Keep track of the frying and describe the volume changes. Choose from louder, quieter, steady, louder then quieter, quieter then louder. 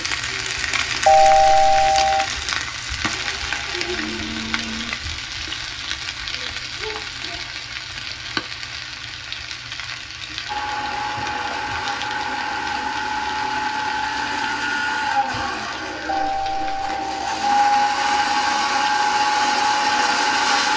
quieter.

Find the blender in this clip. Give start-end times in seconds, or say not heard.
0.2-5.0, 10.4-20.7.